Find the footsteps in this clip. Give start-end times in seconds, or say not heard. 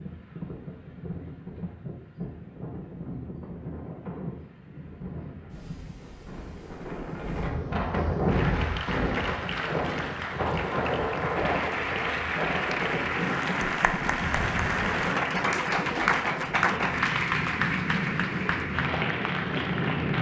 not heard.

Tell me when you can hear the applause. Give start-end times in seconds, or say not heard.
8.2-20.1.